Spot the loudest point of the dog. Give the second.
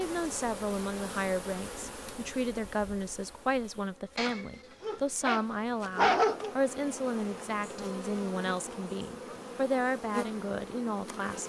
6 s.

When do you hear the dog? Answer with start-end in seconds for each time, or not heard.
4.2-6.5.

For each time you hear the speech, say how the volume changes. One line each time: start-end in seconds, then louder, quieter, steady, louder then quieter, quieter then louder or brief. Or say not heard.
0.0-11.4 steady.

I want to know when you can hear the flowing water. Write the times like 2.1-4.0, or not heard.
not heard.